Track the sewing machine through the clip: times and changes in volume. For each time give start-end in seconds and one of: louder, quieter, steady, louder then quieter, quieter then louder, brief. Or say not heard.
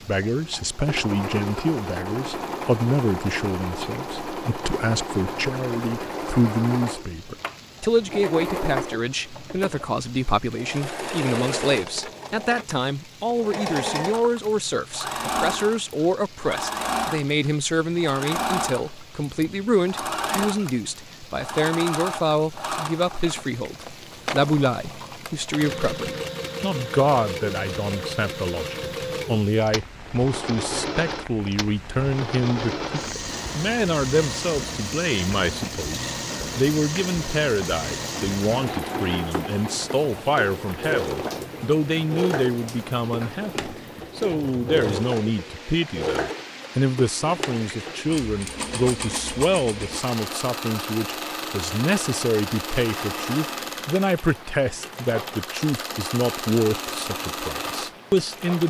0.0-58.6 steady.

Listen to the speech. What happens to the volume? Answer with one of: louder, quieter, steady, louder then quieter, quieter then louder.
steady.